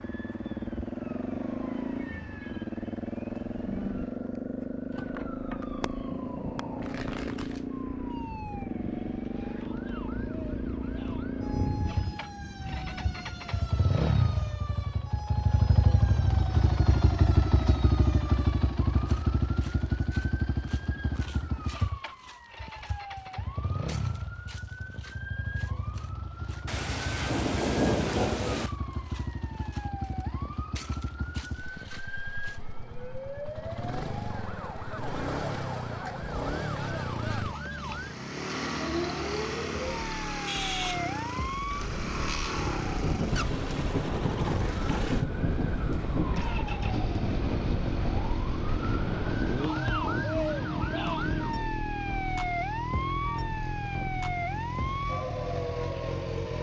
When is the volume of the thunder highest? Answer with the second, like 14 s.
28 s.